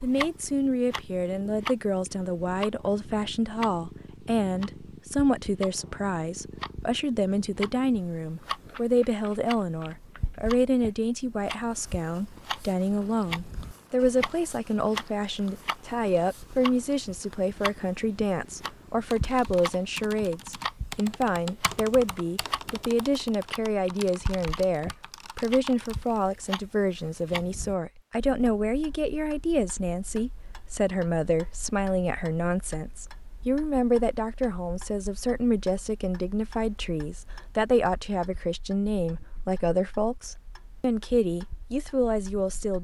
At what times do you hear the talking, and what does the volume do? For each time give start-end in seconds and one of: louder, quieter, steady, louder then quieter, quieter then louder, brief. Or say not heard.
0.0-42.7 steady.